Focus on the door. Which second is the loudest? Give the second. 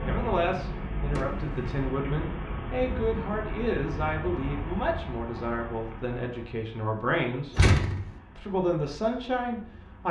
8 s.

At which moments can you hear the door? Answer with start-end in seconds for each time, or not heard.
1.1-1.8, 7.5-8.1.